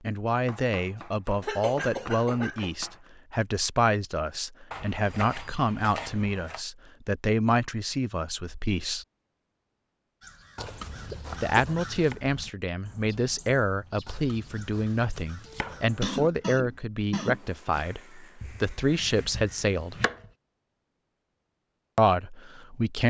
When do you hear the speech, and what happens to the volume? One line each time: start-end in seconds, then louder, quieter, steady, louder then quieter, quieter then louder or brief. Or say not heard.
0.0-9.1 steady
11.4-20.0 steady
21.9-23.0 brief.